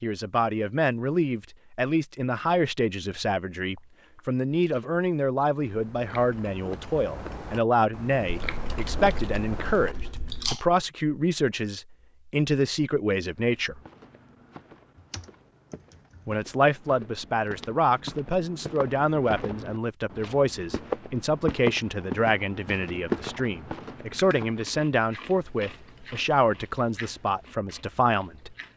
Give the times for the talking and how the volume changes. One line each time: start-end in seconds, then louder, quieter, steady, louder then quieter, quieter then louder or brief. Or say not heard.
0.0-13.8 steady
16.2-28.6 steady.